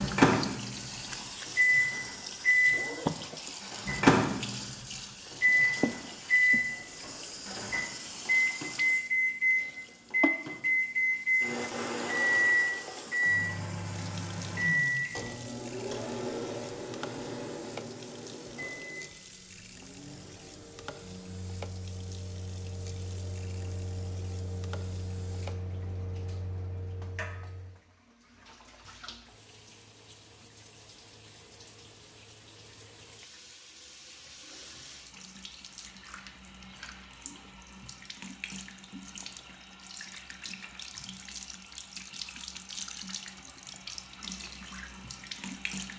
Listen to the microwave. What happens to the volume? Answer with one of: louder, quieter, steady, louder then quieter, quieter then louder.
quieter.